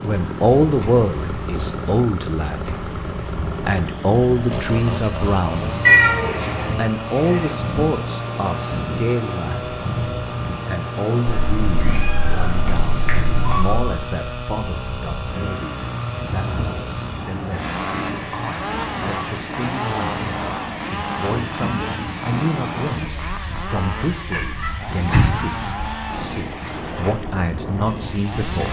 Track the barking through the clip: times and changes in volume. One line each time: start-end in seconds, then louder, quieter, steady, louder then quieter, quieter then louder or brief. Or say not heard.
not heard.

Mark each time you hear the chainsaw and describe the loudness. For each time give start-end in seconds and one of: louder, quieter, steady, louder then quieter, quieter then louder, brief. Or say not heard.
0.0-28.6 steady.